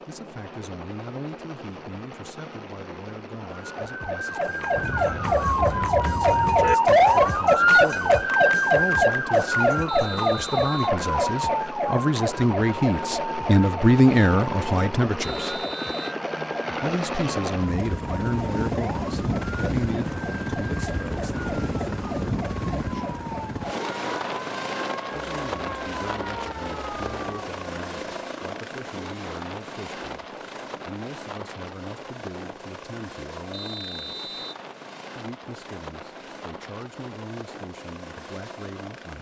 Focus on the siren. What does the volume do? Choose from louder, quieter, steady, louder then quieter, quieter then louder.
quieter.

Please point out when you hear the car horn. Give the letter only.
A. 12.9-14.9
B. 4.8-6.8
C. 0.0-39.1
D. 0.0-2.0
B.